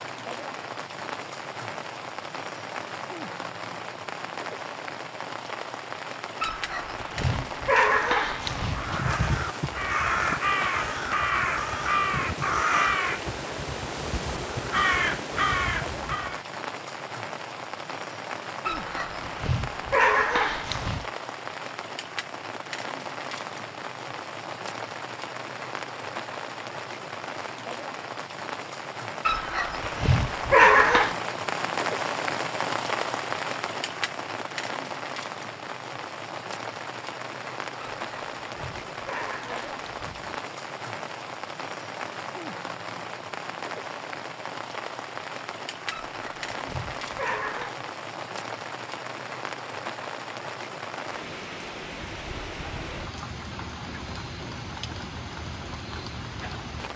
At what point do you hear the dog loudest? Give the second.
31 s.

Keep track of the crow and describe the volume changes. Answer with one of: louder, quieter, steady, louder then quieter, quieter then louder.
quieter then louder.